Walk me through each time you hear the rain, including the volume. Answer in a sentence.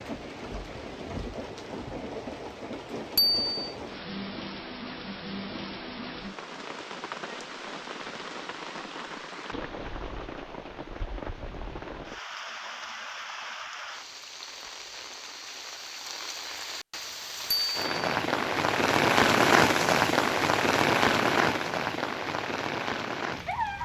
You can hear the rain from 0.0 to 23.8 s, getting louder.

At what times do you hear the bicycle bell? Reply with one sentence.
The bicycle bell can be heard from 3.1 to 3.8 s and from 17.5 to 18.1 s.